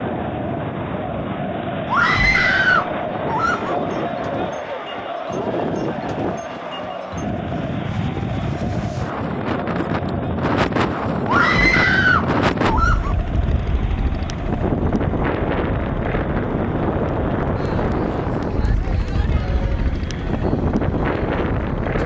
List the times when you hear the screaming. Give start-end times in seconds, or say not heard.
1.9-3.8, 11.2-13.2.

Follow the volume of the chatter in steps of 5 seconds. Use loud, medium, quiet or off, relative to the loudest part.
loud, loud, medium, medium, medium.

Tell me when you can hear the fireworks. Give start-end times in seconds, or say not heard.
not heard.